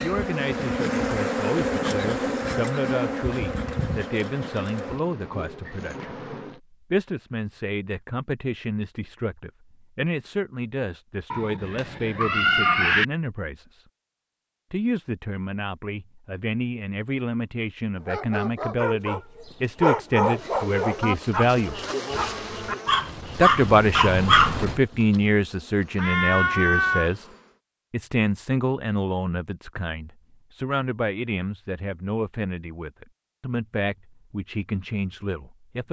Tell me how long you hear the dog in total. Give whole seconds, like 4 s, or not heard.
7 s.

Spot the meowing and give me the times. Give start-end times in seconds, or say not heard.
11.3-13.1, 25.9-27.1.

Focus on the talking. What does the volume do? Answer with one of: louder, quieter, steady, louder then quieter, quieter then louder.
louder then quieter.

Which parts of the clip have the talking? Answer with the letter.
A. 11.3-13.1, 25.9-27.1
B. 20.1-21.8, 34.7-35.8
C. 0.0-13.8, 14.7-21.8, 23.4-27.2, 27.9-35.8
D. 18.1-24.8
C.